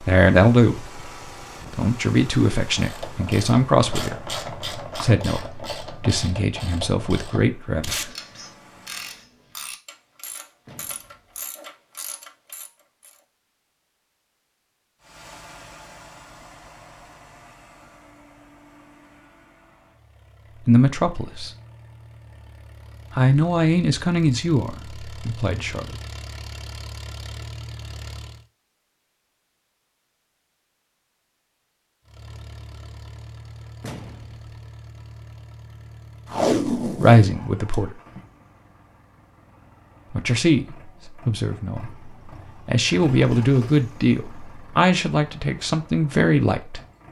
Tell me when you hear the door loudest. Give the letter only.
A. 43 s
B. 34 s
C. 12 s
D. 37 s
B.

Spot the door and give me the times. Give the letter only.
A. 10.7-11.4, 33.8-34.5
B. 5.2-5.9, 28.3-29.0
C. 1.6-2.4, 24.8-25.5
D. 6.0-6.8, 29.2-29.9
A.